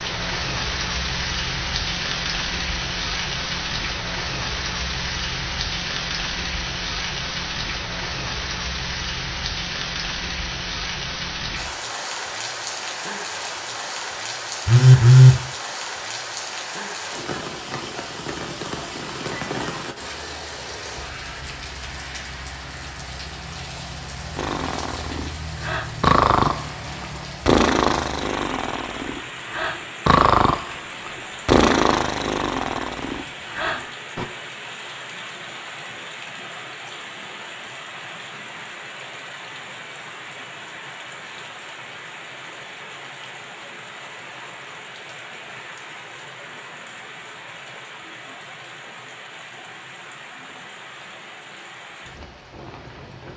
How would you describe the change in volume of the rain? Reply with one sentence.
The volume of the rain goes down.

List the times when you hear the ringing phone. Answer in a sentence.
You can hear the ringing phone from 14.7 to 15.3 s.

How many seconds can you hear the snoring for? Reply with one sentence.
You can hear the snoring for 10 seconds altogether.